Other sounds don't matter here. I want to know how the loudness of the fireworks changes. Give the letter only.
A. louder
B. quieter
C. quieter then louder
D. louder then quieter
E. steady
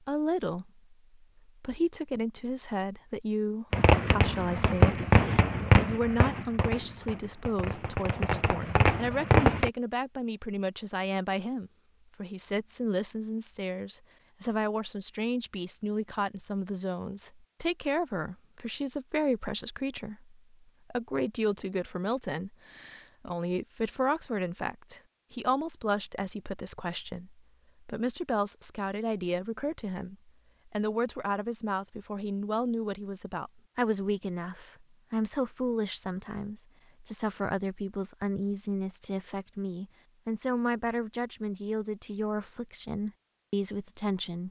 C.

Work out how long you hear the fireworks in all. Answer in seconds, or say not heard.
6 s.